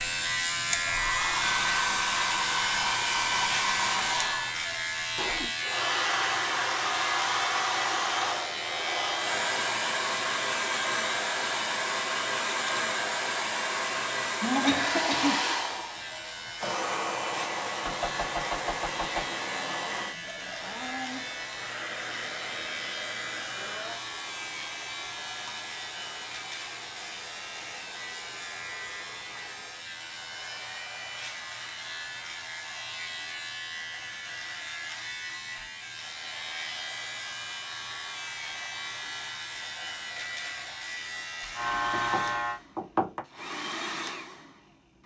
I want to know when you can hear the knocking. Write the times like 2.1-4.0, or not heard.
17.9-19.3, 41.9-43.2.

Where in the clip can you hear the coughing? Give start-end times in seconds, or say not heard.
14.4-15.4.